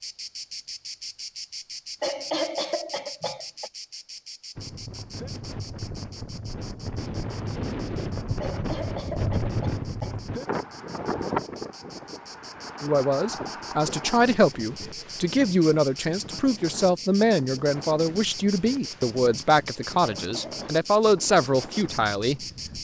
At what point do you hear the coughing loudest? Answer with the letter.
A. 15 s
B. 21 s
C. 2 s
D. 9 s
C.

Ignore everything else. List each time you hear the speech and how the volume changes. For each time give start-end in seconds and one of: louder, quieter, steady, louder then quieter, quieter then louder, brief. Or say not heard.
12.8-22.8 steady.